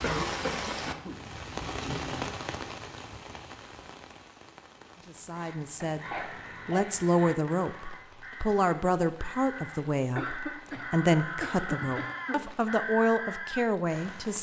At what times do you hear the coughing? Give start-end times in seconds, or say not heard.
0.0-1.2, 5.9-6.9, 10.2-12.5.